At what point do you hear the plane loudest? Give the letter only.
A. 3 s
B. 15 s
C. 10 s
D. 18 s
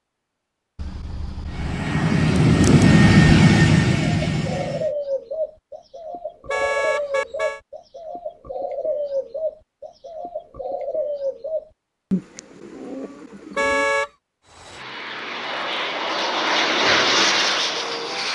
A.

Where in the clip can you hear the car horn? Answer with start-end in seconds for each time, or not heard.
0.8-1.8, 6.5-7.6, 13.6-14.1.